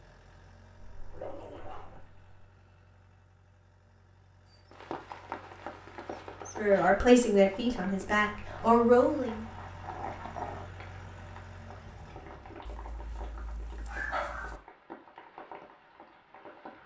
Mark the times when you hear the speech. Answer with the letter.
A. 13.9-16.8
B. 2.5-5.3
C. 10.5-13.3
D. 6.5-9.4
D.